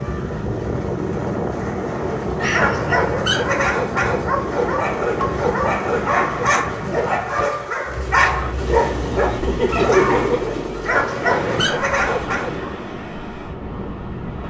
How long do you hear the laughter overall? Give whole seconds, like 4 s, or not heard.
2 s.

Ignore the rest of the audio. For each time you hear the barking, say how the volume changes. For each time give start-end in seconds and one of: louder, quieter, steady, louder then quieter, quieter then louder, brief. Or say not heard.
2.0-12.7 steady.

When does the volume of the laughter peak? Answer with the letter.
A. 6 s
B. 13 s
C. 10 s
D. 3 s
C.